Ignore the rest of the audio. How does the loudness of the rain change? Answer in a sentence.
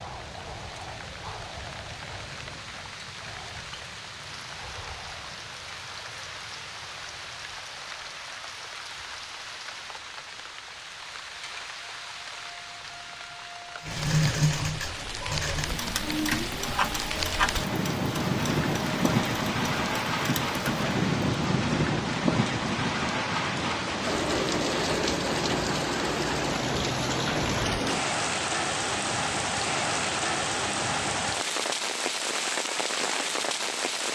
The volume of the rain goes up.